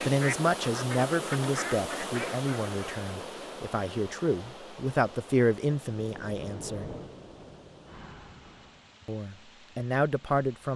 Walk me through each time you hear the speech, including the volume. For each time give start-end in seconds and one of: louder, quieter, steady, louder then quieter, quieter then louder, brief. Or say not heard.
0.0-6.9 quieter then louder
9.1-10.7 brief.